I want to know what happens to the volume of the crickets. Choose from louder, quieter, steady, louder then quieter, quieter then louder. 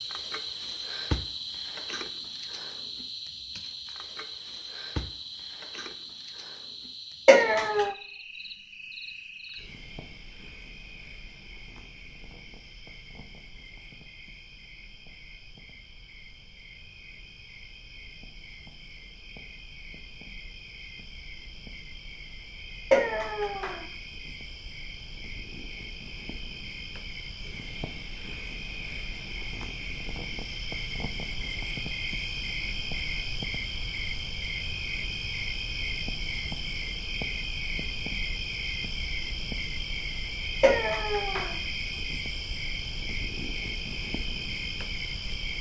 quieter then louder.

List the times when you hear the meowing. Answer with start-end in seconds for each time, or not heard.
7.2-8.0, 22.9-23.9, 40.6-41.5.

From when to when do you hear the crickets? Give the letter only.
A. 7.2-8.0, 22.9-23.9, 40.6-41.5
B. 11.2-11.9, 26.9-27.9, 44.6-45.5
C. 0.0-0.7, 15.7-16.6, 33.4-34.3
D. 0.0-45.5
D.